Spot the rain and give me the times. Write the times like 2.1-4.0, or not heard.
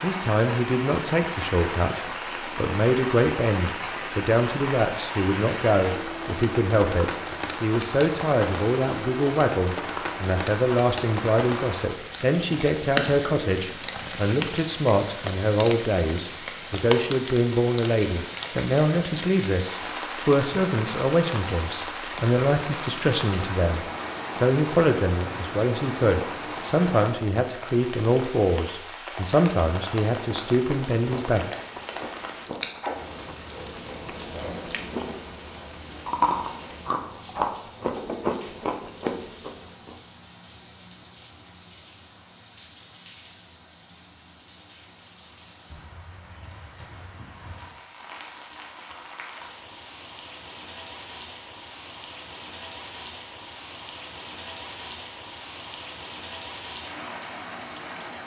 0.0-58.2.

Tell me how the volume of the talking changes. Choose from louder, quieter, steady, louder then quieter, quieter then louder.
steady.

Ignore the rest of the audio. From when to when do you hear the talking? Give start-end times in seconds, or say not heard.
0.0-31.4.